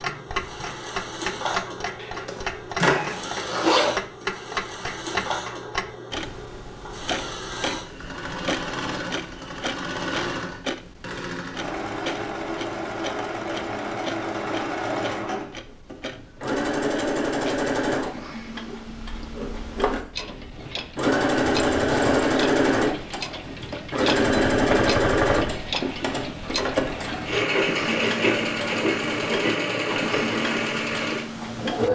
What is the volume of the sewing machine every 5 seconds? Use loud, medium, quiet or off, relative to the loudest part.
quiet, medium, medium, medium, loud, loud, loud.